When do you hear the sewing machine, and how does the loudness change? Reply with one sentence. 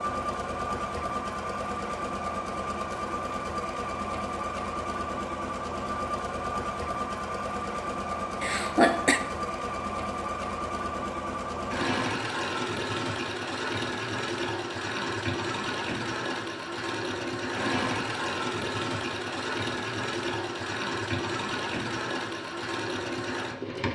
The sewing machine can be heard from 0.0 to 23.9 s, at a steady volume.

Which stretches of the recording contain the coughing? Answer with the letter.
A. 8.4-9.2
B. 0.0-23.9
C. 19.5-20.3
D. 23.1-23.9
A.